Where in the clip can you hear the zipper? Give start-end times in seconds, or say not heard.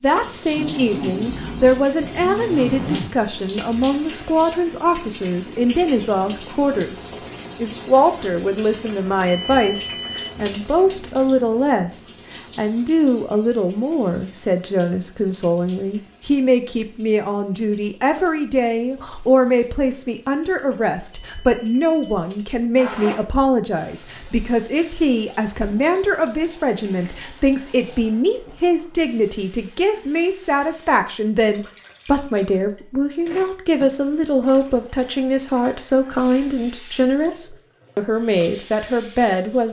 0.6-3.2, 22.8-23.2.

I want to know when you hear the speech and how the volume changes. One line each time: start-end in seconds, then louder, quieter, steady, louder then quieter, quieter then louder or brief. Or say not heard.
0.0-39.6 steady.